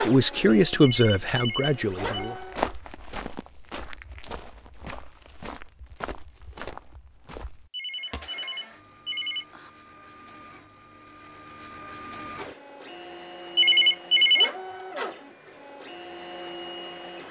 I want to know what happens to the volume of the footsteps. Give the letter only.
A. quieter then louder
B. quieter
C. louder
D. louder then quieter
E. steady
B.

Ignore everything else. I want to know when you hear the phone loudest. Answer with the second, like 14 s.
14 s.